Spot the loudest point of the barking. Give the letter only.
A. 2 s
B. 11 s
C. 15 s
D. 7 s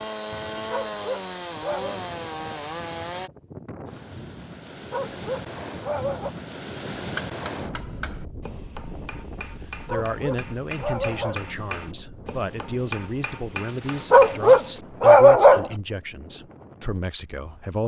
C.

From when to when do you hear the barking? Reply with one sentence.
The barking can be heard from 0.7 to 1.9 s, from 4.9 to 6.3 s, from 9.8 to 11.4 s and from 14.1 to 15.7 s.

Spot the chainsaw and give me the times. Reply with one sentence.
The chainsaw can be heard from 0.0 to 3.3 s.